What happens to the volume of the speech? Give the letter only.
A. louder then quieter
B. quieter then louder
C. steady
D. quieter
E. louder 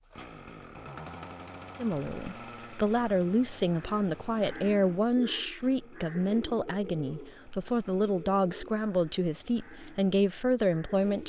C.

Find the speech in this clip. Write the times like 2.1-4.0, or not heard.
1.8-11.2.